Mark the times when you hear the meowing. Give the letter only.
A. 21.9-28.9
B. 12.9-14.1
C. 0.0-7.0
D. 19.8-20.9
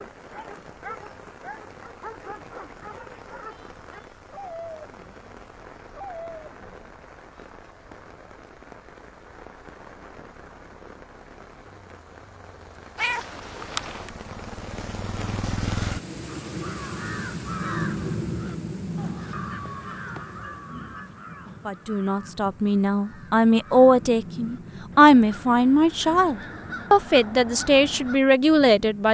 B.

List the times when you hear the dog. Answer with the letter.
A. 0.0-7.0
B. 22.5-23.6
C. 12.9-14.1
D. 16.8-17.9
A.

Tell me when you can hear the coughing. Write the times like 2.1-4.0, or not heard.
not heard.